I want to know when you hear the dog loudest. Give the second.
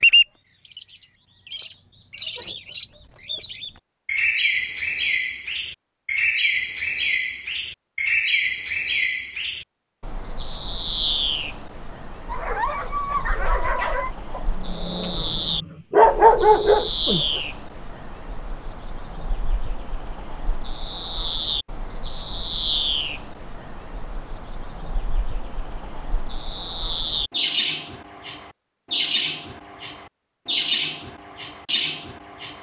16 s.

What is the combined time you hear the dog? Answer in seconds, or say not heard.
5 s.